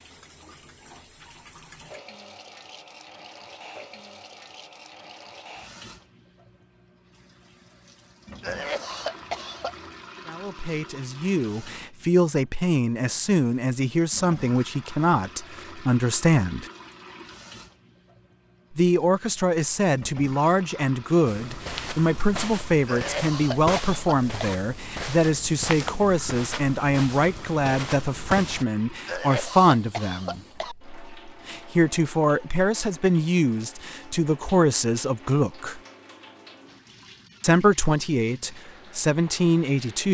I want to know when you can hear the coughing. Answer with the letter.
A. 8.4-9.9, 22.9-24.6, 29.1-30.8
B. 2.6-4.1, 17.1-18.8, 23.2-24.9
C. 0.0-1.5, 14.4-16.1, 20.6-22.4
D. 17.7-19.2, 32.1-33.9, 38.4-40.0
A.